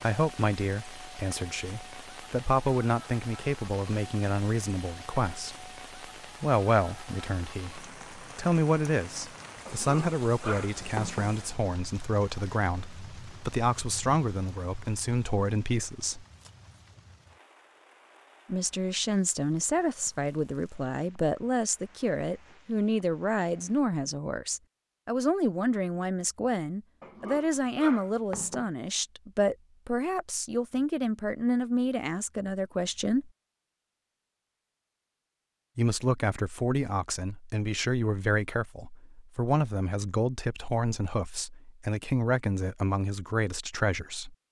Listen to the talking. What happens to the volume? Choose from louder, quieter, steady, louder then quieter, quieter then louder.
steady.